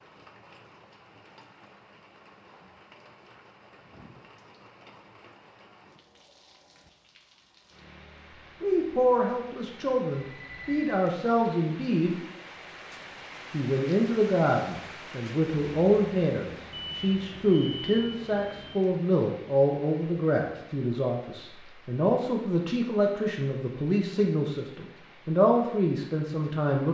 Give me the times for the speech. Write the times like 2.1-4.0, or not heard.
8.6-12.2, 13.5-26.8.